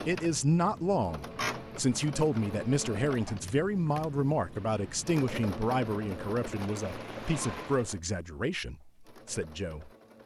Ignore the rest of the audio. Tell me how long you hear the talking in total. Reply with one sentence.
The talking can be heard for 10 seconds in total.